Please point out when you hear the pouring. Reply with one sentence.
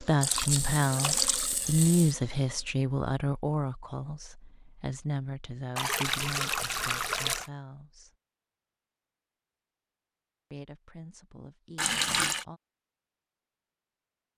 The pouring can be heard from 0.2 to 2.1 s, from 5.8 to 7.5 s and from 11.8 to 12.4 s.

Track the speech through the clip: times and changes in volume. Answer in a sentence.
You can hear the speech from 0.0 to 8.1 s, getting quieter; and briefly from 10.5 to 12.6 s.